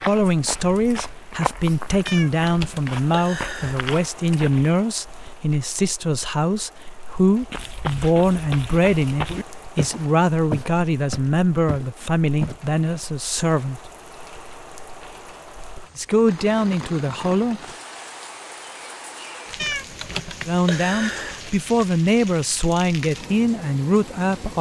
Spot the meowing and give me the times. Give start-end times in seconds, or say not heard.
2.0-3.8, 19.6-21.4.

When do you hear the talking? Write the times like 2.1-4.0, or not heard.
0.1-13.8, 15.9-17.7, 20.4-24.5.